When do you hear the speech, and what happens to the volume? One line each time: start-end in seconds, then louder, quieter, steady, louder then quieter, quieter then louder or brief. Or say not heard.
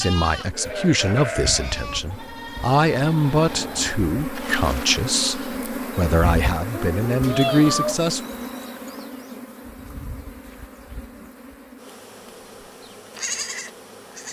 0.0-8.2 steady.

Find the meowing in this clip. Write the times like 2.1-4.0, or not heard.
6.8-8.1.